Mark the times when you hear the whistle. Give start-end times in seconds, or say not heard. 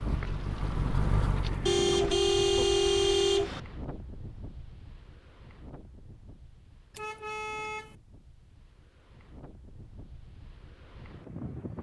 not heard.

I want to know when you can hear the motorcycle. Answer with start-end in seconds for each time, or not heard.
0.0-1.8.